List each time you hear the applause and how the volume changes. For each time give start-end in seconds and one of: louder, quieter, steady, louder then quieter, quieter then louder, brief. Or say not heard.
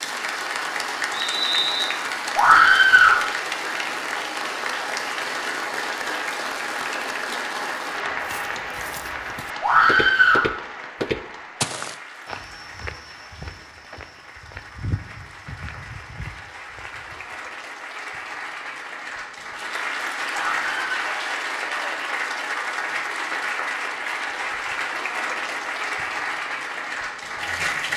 0.0-27.9 quieter then louder.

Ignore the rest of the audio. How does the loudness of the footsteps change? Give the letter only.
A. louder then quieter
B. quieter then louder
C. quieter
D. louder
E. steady
A.